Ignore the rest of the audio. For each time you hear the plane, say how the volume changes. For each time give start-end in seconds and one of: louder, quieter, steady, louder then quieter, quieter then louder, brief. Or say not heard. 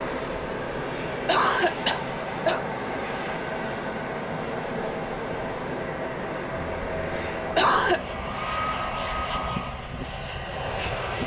0.0-11.2 steady.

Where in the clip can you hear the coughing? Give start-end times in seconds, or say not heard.
0.8-2.6, 7.2-8.0.